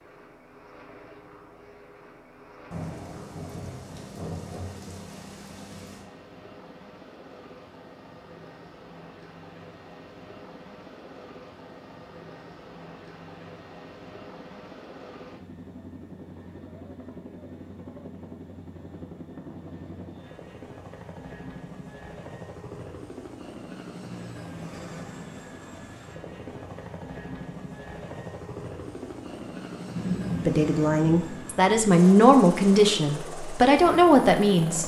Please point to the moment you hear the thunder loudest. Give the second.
30 s.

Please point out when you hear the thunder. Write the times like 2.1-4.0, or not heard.
2.7-6.0, 29.9-31.5.